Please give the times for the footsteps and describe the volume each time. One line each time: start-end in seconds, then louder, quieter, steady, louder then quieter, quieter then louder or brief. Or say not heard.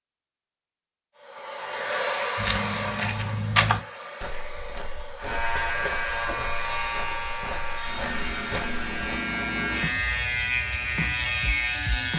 2.4-9.2 quieter then louder.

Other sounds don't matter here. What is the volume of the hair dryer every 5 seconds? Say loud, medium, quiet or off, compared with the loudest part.
loud, medium, off.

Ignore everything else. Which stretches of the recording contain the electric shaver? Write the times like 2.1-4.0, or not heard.
5.2-12.1.